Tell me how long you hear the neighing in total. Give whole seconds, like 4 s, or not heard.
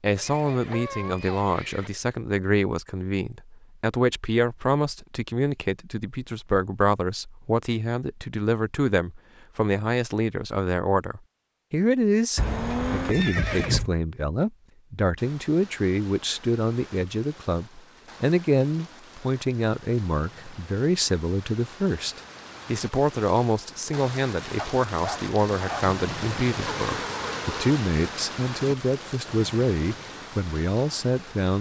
4 s.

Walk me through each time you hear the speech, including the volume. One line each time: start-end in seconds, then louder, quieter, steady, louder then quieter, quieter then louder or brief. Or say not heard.
0.0-31.5 steady.